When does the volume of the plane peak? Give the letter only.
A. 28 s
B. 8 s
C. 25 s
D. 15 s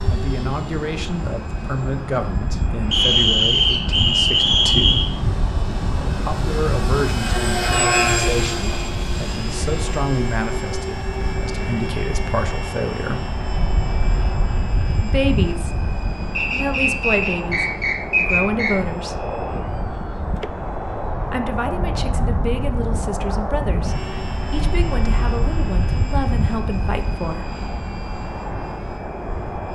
B.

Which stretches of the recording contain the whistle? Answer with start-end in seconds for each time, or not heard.
2.9-5.1, 16.4-18.8.